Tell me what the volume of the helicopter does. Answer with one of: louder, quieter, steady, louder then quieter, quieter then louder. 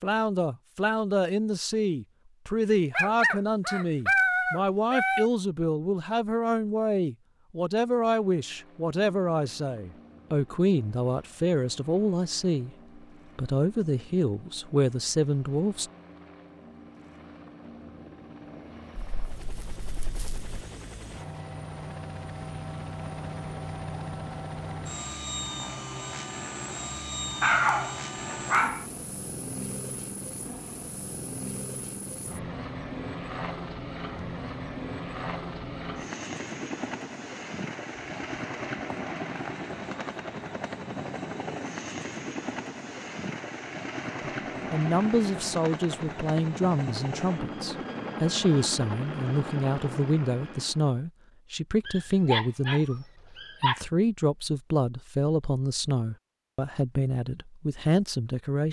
louder.